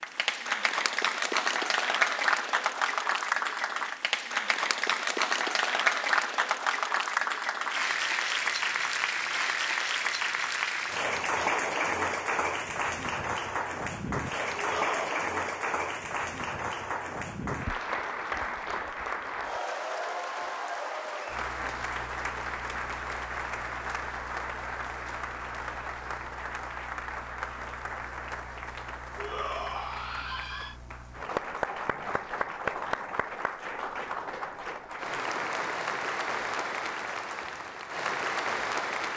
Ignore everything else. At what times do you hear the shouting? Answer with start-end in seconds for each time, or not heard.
14.6-15.2, 29.1-30.8.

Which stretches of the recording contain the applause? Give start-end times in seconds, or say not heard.
0.0-39.1.